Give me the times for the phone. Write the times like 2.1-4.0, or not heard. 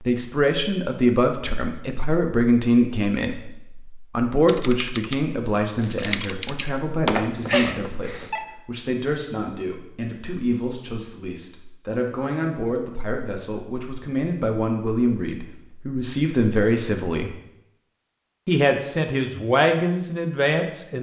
7.0-8.4.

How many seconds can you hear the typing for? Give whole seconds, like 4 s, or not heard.
2 s.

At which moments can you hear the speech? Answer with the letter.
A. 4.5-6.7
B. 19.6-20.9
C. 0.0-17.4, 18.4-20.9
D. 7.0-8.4
C.